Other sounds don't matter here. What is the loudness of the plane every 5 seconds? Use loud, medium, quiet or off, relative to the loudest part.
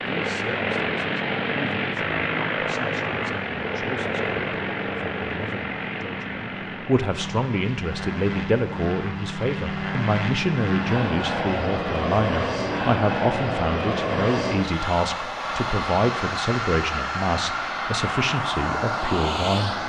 loud, medium, loud, loud.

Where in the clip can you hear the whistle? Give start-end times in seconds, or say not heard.
not heard.